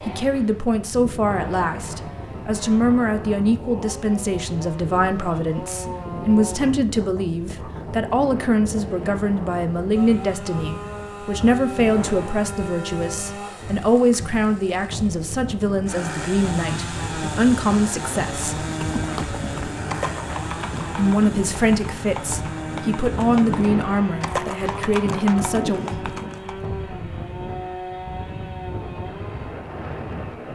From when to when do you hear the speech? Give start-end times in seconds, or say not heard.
0.1-18.6, 20.9-25.8.